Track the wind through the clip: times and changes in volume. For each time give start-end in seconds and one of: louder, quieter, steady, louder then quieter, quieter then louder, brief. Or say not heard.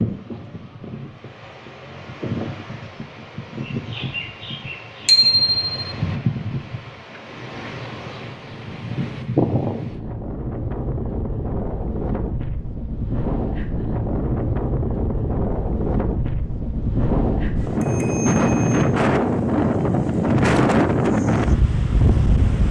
0.0-22.6 louder.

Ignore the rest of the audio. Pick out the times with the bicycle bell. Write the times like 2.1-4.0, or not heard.
5.0-5.6, 17.8-18.8.